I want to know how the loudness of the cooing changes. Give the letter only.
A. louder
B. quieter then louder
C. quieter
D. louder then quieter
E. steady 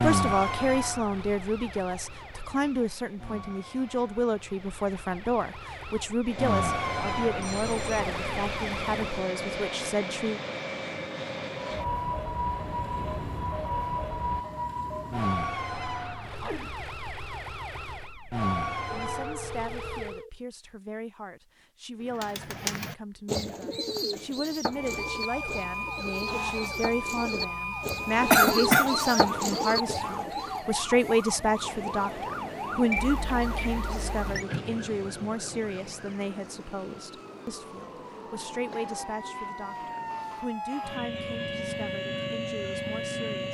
B.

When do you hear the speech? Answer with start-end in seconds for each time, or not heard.
0.0-10.4, 18.9-43.4.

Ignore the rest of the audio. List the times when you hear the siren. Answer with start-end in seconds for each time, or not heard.
0.0-9.2, 11.6-20.2, 24.7-43.4.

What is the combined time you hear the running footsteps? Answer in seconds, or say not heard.
not heard.